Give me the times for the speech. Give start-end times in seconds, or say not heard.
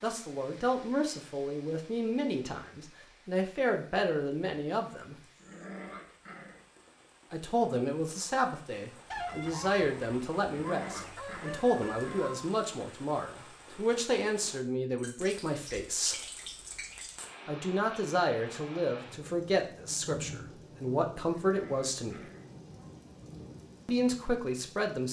0.0-5.2, 7.3-16.2, 17.4-22.3, 23.9-25.0.